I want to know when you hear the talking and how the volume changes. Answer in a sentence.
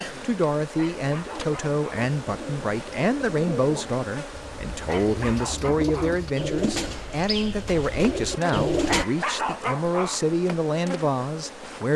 You can hear the talking from 0.2 to 11.9 s, at a steady volume.